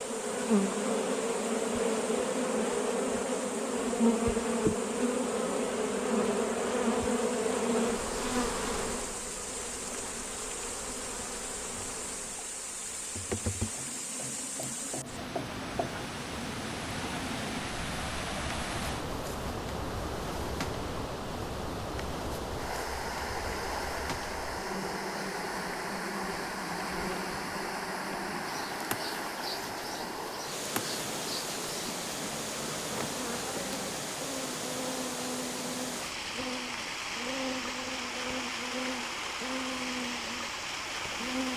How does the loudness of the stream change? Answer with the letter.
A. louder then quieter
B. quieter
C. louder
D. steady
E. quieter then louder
C.